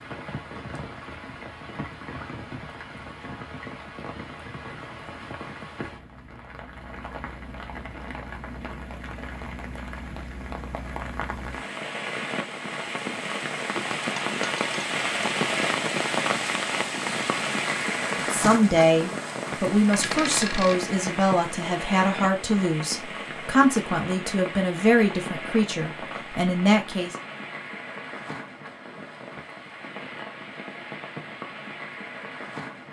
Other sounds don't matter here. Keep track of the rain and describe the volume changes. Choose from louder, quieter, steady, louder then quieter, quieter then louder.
louder then quieter.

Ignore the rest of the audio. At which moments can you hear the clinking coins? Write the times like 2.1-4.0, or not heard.
14.2-14.8, 19.9-20.9.